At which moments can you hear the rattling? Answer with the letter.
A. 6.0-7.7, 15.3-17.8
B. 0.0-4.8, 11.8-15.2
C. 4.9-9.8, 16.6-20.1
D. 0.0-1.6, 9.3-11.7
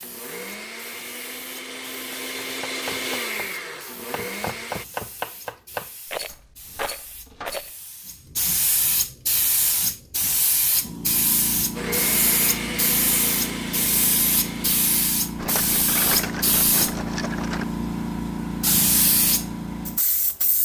A.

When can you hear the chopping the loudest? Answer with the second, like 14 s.
5 s.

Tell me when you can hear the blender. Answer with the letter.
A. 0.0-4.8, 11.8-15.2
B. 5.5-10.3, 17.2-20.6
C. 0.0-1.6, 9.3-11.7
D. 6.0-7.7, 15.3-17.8
A.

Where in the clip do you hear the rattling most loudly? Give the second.
16 s.